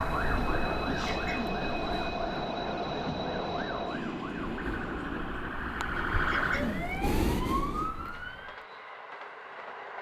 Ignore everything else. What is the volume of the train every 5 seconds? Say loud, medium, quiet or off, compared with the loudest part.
loud, medium.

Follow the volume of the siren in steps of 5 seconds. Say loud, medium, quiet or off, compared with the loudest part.
medium, loud.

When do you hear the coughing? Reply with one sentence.
The coughing can be heard from 1.1 to 1.6 s and from 6.2 to 6.8 s.